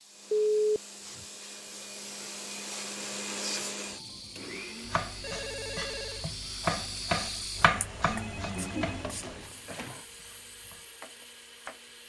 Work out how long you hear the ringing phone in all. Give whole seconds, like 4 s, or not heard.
4 s.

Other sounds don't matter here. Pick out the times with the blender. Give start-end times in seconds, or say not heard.
0.0-12.0.